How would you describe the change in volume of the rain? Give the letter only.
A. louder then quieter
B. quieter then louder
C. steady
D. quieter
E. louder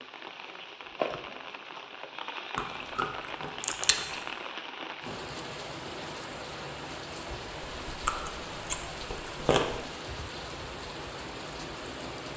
C.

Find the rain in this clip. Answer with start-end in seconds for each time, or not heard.
0.0-12.3.